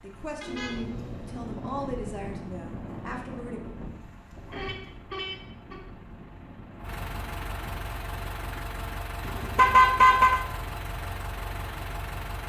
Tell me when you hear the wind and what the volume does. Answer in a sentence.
The wind can be heard from 0.0 to 8.8 s, getting quieter.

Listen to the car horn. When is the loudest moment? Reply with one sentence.
The loudest moment of the car horn is at 10 seconds.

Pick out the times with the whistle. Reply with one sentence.
You can't hear the whistle here.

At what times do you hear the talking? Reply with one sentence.
The talking can be heard from 0.0 to 3.6 s.